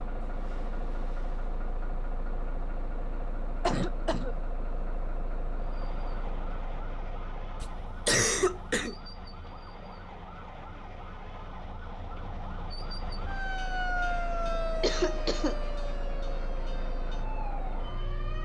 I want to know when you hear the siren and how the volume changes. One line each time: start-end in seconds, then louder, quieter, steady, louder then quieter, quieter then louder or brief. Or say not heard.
5.6-18.4 louder then quieter.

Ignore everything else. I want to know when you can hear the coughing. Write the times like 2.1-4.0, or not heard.
3.6-4.3, 7.6-8.9, 14.8-15.6.